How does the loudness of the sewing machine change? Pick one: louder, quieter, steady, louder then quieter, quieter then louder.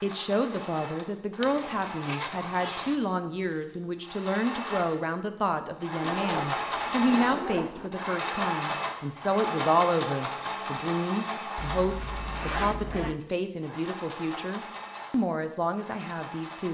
louder then quieter.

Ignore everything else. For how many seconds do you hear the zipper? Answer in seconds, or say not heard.
5 s.